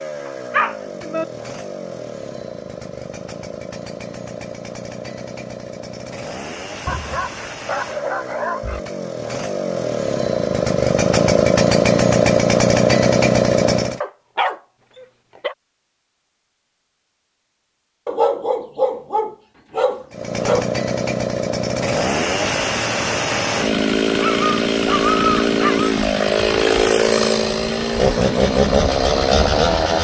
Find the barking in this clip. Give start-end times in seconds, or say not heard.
0.2-1.2, 6.8-8.8, 14.0-15.6, 18.1-20.7, 24.1-25.9.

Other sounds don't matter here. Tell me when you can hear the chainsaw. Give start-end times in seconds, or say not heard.
0.0-14.0, 20.1-30.0.